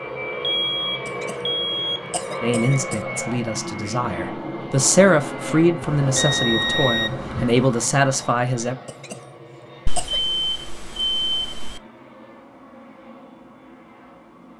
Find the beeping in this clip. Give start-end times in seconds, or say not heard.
0.4-2.1, 5.8-7.7, 9.8-11.8.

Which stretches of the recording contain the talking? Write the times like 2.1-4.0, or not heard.
2.4-8.8.